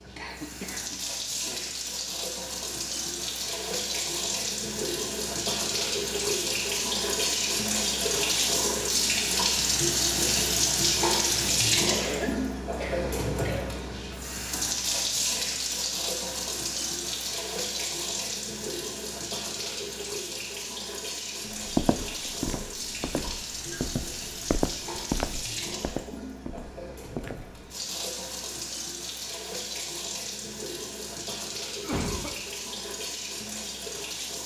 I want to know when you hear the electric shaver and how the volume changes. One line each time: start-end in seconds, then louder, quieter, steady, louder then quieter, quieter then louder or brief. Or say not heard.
not heard.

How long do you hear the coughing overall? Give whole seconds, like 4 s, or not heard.
4 s.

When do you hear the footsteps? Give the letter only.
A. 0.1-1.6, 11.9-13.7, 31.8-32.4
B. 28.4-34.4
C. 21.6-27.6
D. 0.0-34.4
C.